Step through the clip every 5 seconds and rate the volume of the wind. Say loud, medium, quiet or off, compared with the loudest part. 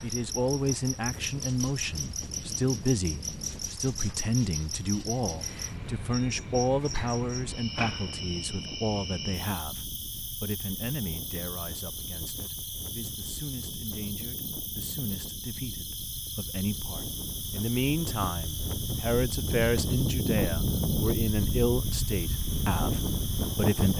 quiet, quiet, quiet, medium, loud.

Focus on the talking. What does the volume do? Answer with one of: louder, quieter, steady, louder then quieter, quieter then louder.
quieter then louder.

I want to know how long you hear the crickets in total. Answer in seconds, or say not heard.
24 s.